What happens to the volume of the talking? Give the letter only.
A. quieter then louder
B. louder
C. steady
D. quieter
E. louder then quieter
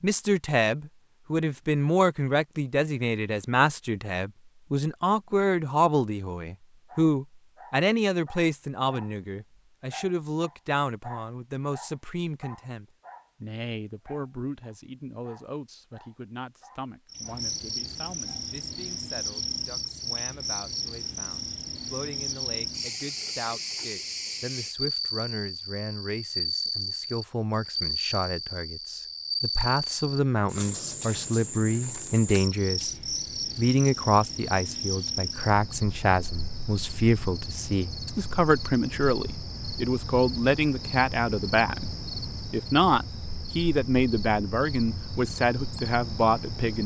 A.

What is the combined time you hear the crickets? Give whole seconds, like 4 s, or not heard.
30 s.